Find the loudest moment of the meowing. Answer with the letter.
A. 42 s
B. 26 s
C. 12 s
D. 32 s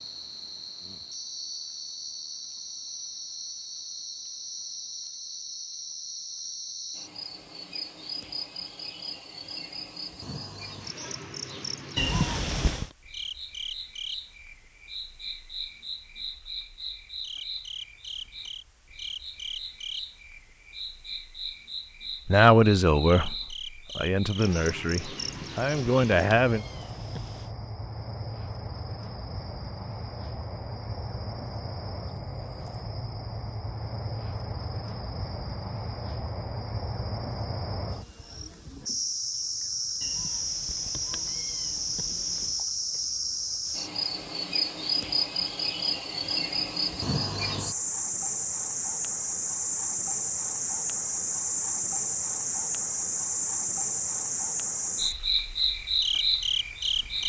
C.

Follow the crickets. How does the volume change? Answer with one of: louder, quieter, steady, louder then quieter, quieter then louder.
louder.